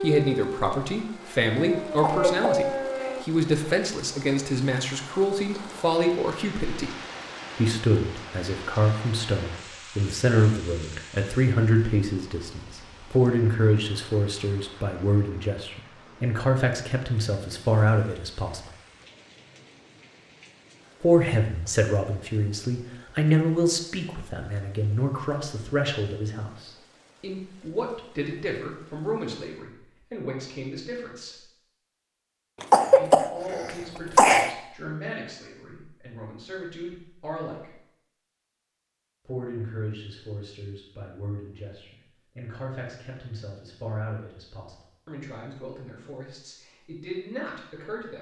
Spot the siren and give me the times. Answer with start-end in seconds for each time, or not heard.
0.0-3.2.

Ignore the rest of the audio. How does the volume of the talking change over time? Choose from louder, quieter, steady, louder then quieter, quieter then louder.
quieter.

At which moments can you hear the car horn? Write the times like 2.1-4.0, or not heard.
not heard.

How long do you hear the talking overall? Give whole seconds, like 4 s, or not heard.
42 s.